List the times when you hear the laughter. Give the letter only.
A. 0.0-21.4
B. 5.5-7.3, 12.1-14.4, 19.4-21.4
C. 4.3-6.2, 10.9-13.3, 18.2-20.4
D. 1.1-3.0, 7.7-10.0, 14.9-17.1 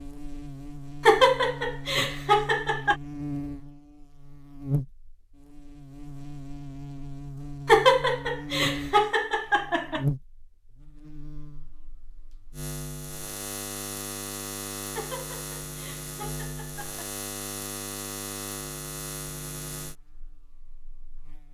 D.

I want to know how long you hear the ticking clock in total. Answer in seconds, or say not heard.
not heard.